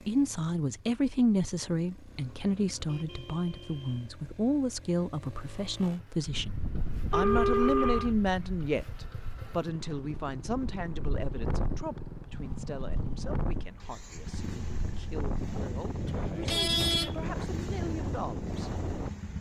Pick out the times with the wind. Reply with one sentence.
You can hear the wind from 6.2 to 19.3 s.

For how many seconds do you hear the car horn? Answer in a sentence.
The car horn can be heard for 4 seconds in total.